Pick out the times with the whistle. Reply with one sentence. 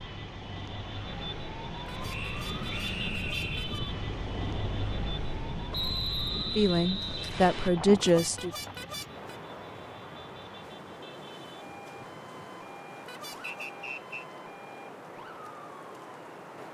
The whistle can be heard from 2.1 to 3.7 s, from 5.7 to 7.7 s and from 13.4 to 14.2 s.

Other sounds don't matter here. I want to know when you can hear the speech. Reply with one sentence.
You can hear the speech from 6.5 to 8.5 s.